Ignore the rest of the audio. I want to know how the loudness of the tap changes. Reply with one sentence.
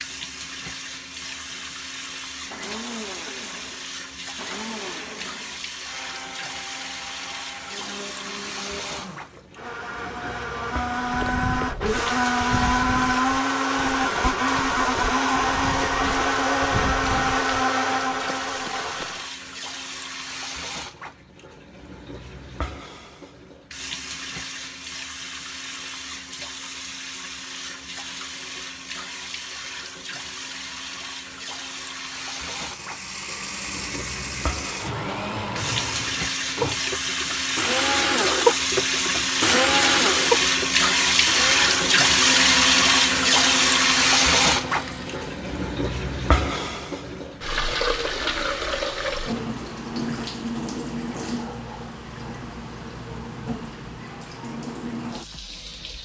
The volume of the tap goes up, then down.